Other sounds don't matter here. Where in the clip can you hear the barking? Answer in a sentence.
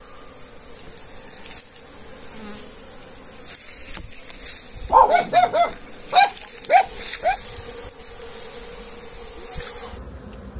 You can hear the barking from 4.9 to 7.3 s.